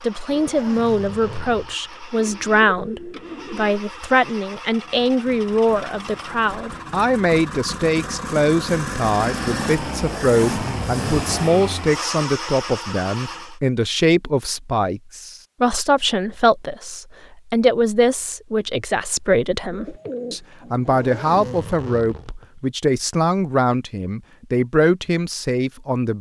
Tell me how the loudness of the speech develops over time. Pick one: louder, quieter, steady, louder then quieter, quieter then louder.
steady.